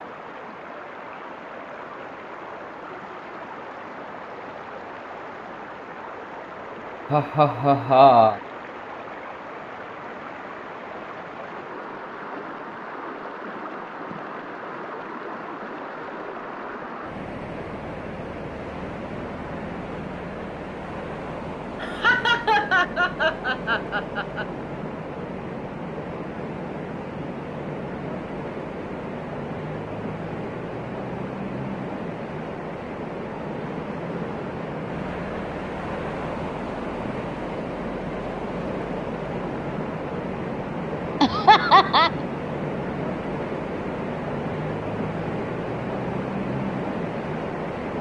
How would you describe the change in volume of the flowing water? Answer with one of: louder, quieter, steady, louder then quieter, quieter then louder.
louder.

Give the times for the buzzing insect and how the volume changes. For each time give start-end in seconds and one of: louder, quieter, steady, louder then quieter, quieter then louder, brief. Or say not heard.
not heard.